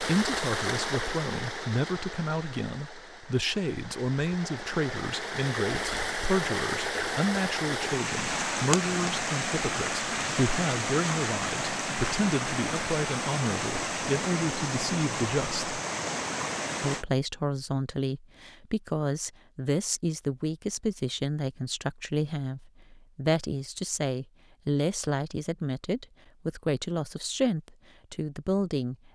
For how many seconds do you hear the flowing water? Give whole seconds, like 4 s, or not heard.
17 s.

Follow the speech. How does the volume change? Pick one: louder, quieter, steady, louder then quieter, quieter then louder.
steady.